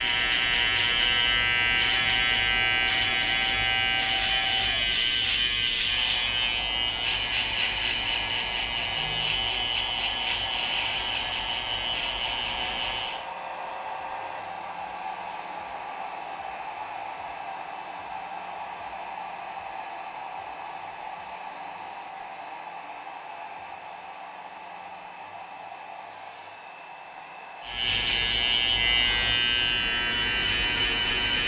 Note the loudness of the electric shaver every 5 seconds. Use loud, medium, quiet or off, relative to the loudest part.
loud, loud, medium, off, off, loud, loud.